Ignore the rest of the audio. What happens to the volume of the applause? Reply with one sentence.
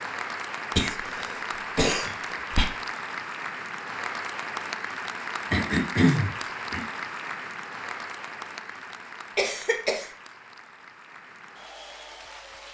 The volume of the applause goes down.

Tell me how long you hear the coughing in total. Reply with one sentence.
You can hear the coughing for 4 seconds altogether.